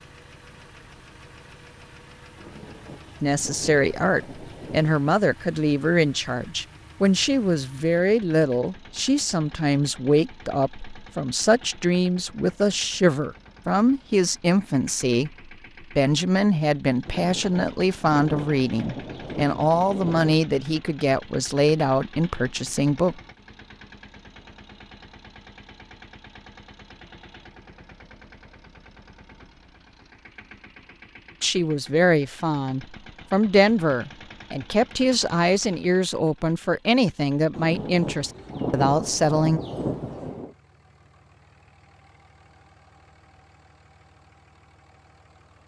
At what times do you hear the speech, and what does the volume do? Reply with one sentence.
You can hear the speech from 3.2 to 23.1 s, at a steady volume; and from 31.4 to 39.6 s, at a steady volume.